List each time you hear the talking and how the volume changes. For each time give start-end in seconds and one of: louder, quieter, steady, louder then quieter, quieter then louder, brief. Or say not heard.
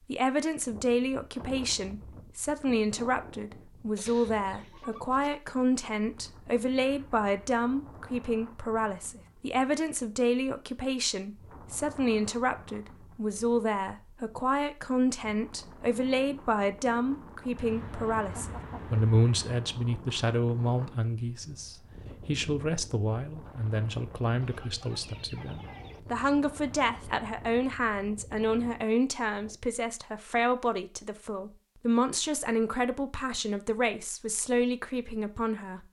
0.1-35.8 steady.